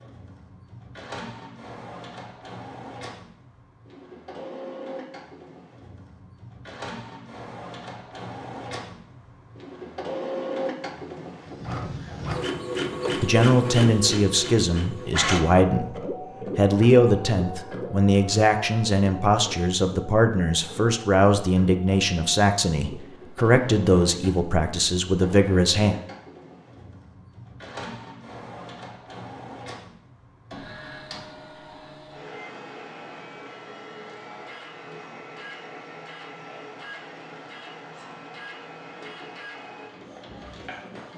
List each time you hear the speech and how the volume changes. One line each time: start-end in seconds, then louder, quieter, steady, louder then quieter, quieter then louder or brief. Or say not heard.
13.2-15.9 brief
16.6-25.9 steady.